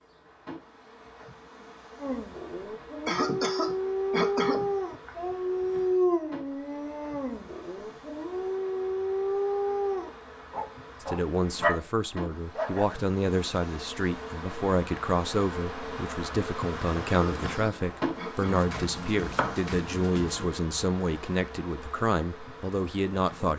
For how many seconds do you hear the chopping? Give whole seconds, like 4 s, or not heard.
2 s.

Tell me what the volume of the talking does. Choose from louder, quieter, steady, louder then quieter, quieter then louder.
steady.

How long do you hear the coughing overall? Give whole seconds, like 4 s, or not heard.
4 s.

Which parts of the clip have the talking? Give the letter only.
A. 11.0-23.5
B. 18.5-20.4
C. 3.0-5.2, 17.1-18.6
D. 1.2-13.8
A.